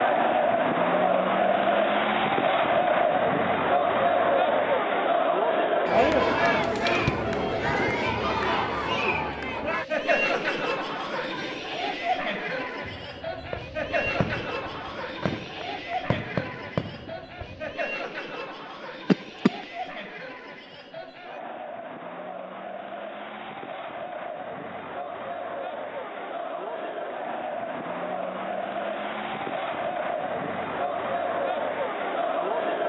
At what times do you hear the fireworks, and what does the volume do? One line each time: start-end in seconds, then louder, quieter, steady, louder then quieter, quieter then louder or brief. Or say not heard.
12.8-17.8 louder.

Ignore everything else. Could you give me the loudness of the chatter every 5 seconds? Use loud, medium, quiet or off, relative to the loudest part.
loud, loud, medium, quiet, quiet, medium, medium.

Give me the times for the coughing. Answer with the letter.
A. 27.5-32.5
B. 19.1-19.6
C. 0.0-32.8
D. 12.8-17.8
B.